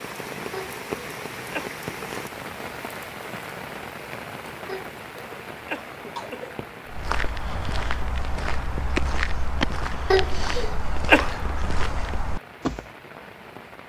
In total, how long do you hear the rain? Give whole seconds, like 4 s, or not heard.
14 s.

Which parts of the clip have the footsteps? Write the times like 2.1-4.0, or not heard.
6.8-12.8.